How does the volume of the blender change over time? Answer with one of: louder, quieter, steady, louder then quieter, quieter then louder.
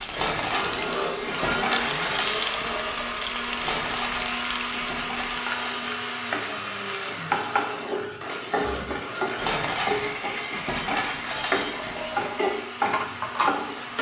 quieter.